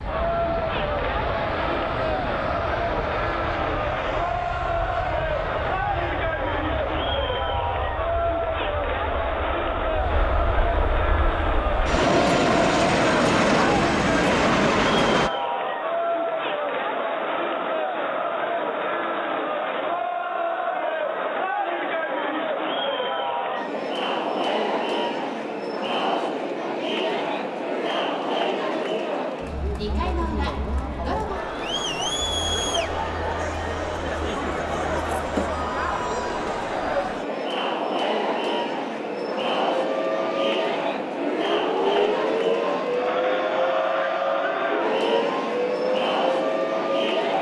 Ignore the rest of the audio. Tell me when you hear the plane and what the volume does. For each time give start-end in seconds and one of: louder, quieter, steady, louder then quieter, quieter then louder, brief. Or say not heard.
0.0-15.3 quieter then louder.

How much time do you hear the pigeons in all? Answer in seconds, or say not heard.
not heard.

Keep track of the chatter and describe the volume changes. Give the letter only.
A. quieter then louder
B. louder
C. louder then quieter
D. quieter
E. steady
E.